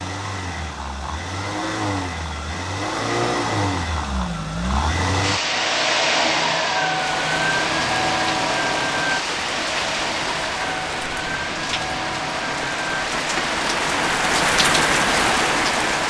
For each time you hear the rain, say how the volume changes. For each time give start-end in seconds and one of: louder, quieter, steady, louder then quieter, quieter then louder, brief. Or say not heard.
6.9-16.0 louder.